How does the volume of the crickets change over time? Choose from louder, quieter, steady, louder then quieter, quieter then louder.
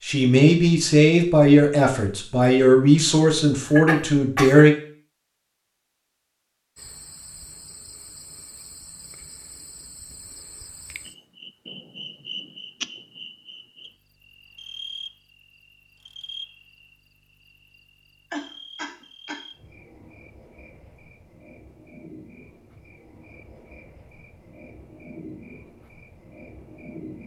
louder then quieter.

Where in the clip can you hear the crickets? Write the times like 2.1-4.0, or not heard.
6.8-27.2.